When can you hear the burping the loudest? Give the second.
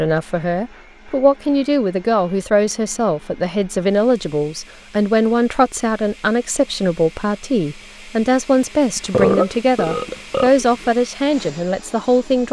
9 s.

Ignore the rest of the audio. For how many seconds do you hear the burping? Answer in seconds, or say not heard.
2 s.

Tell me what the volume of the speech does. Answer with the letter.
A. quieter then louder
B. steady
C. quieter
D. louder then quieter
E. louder
B.